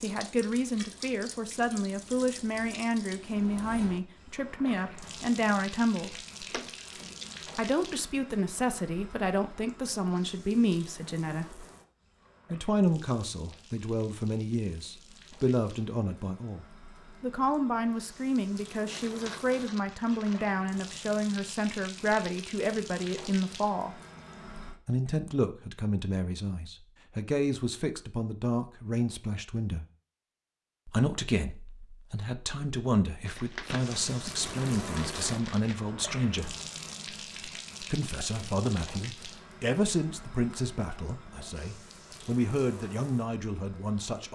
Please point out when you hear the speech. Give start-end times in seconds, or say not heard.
0.0-6.2, 7.5-11.7, 12.5-24.0, 24.9-29.9, 30.9-36.5, 37.9-44.3.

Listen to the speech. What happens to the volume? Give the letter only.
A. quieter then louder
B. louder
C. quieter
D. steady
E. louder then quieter
D.